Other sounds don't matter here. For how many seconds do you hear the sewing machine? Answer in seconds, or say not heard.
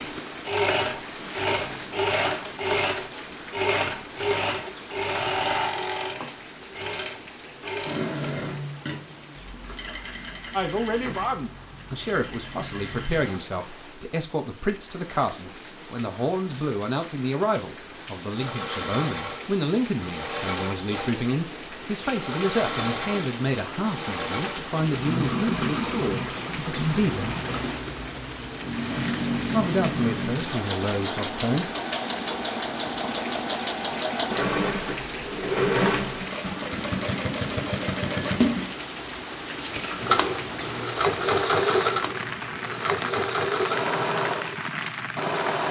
41 s.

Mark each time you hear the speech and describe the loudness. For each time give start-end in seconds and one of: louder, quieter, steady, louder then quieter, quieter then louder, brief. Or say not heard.
10.5-27.4 steady
29.5-31.7 brief.